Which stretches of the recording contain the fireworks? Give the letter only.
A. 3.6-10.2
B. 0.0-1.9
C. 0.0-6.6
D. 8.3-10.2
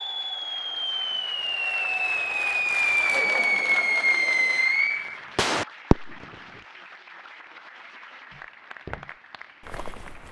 C.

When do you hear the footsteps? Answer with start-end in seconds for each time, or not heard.
8.3-10.2.